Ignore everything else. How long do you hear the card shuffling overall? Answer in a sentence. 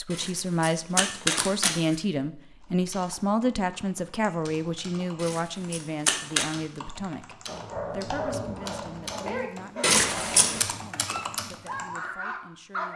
You can hear the card shuffling for 4 seconds altogether.